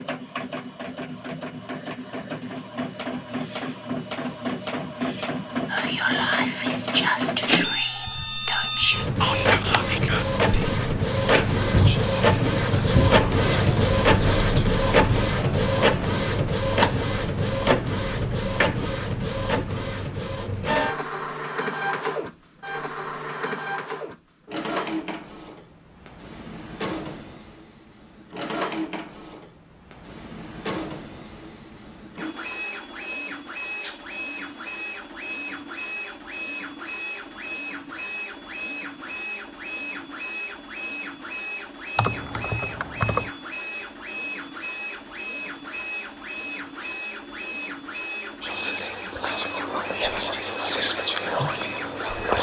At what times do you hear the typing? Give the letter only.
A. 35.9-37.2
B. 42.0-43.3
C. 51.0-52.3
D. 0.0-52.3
B.